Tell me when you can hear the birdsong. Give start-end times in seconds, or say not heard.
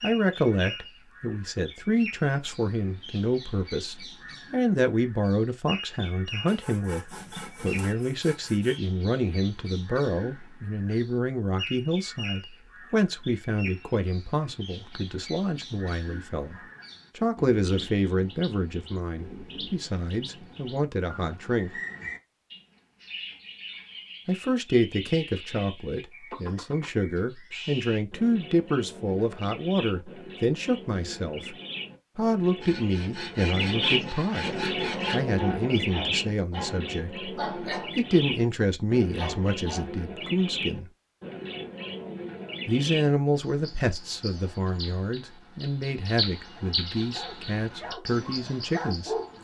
0.0-49.3.